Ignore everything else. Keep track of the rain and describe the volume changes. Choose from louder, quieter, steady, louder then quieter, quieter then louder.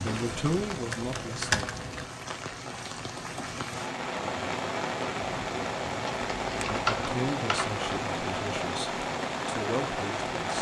louder.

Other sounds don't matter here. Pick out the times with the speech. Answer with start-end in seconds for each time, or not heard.
0.0-1.6, 6.7-10.5.